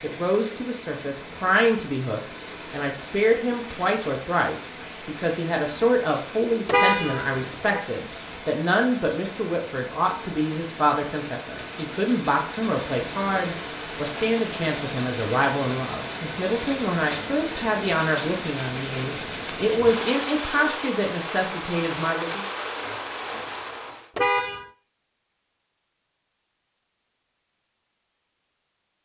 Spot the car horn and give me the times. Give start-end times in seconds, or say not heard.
6.7-7.8, 24.1-24.7.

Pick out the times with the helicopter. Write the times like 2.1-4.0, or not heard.
not heard.